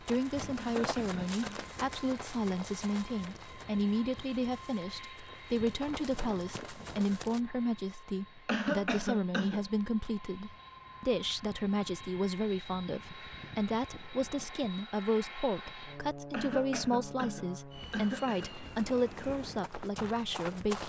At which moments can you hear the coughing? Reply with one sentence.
The coughing can be heard from 0.6 to 1.8 s, from 8.4 to 9.7 s and from 16.3 to 18.6 s.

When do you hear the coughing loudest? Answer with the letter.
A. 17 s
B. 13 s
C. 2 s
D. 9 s
D.